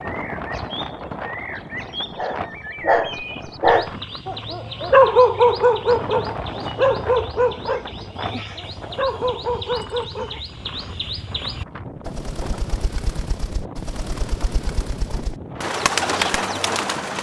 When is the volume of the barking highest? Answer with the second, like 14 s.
5 s.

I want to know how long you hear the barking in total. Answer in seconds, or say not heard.
8 s.